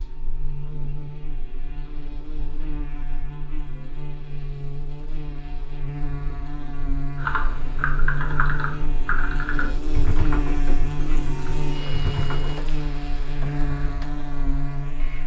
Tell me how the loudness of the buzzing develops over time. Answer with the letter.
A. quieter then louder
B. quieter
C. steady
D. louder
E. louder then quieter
D.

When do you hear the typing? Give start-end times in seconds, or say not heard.
7.2-12.6.